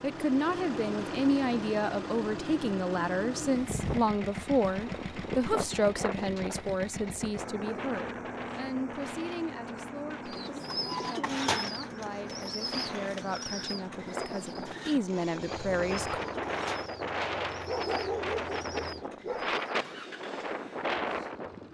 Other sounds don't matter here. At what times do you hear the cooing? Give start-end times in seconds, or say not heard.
10.2-20.1.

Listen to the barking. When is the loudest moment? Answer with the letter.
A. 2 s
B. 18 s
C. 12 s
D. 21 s
B.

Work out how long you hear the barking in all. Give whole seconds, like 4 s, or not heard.
2 s.